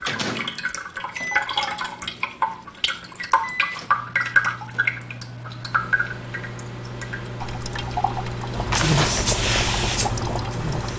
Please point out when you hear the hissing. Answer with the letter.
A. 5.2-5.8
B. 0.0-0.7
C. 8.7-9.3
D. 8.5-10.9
D.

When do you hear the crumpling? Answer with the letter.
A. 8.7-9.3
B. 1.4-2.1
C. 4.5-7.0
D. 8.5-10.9
A.